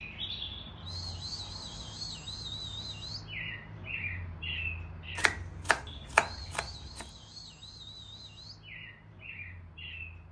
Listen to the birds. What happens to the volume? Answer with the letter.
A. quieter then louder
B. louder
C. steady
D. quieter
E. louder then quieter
D.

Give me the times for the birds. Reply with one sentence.
The birds can be heard from 0.0 to 10.2 s.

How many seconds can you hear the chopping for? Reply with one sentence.
You can hear the chopping for 2 seconds altogether.